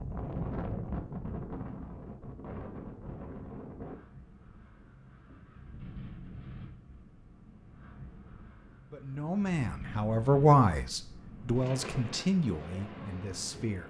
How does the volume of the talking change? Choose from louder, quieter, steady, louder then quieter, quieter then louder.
louder then quieter.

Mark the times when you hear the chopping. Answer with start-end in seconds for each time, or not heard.
not heard.